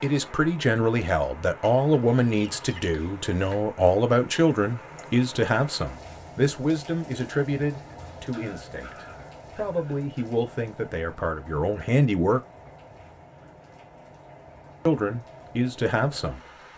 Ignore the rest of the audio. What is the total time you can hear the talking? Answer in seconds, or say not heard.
14 s.